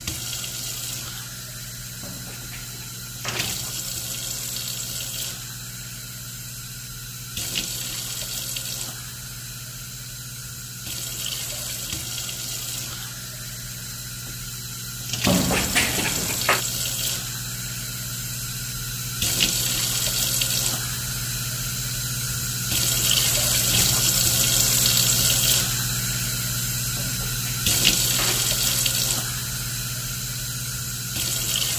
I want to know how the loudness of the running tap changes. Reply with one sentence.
The volume of the running tap goes up.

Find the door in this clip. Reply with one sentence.
You can hear the door from 2.0 to 3.5 s, from 15.2 to 16.6 s and from 26.9 to 28.9 s.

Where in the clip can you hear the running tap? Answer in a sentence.
You can hear the running tap from 0.0 to 31.7 s.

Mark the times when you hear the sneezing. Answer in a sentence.
You can't hear the sneezing here.